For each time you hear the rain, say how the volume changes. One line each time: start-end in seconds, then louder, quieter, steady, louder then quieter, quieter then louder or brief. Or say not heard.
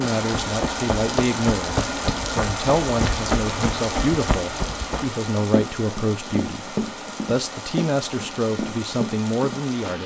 0.0-10.0 quieter.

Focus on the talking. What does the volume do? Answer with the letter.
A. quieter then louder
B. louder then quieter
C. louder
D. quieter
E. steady
E.